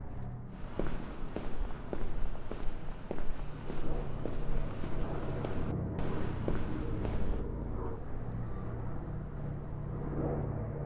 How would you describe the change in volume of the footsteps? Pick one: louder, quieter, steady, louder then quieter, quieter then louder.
quieter.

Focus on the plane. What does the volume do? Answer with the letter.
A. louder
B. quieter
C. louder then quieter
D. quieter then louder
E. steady
A.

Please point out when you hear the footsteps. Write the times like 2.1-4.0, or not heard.
0.5-10.3.